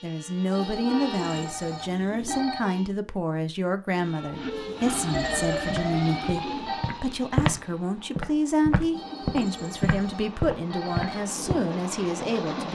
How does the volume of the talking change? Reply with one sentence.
The volume of the talking stays about the same.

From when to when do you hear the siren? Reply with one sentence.
You can hear the siren from 5.1 to 7.0 s.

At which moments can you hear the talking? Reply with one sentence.
The talking can be heard from 0.0 to 12.6 s.